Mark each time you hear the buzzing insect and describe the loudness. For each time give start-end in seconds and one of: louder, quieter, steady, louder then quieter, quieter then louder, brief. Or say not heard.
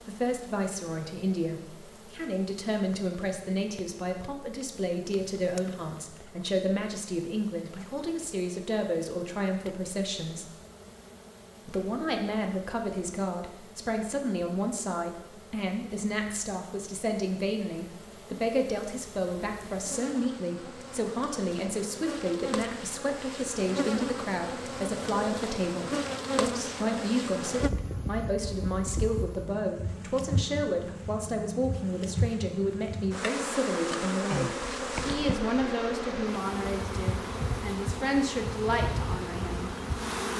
0.0-40.3 louder.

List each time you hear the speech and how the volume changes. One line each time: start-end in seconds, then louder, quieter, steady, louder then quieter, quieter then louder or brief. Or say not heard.
0.1-10.5 steady
11.7-39.7 steady.